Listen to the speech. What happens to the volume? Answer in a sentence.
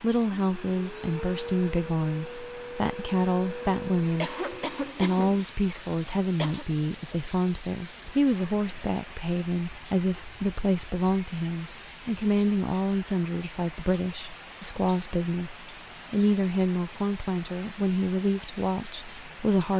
The volume of the speech stays about the same.